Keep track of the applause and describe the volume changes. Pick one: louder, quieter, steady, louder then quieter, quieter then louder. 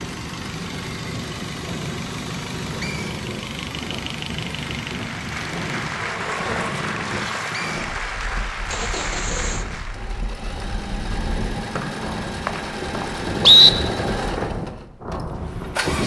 steady.